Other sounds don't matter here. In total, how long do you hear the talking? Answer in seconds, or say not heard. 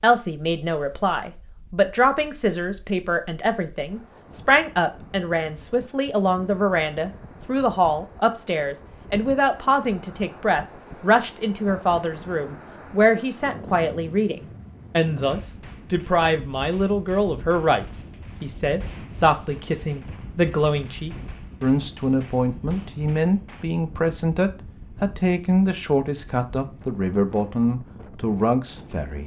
29 s.